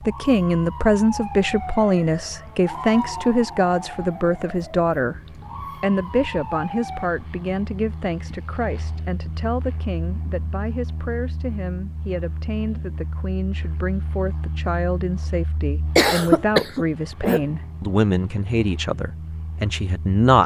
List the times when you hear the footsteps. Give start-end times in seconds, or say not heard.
not heard.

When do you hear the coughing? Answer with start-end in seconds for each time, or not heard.
15.9-17.4.